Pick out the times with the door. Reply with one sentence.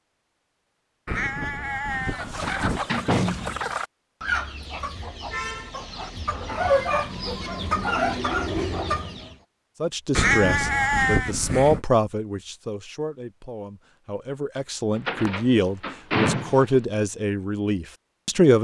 The door can be heard from 2.4 to 3.8 s and from 14.9 to 16.8 s.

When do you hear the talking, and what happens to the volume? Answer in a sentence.
You can hear the talking from 9.8 to 18.5 s, getting quieter then louder.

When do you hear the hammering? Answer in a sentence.
You can't hear the hammering here.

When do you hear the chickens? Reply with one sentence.
The chickens can be heard from 1.9 to 9.3 s.